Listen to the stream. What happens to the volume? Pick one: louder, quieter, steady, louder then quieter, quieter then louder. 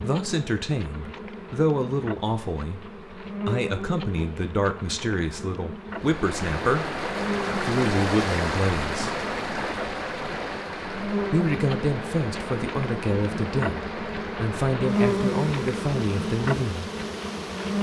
quieter.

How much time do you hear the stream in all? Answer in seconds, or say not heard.
12 s.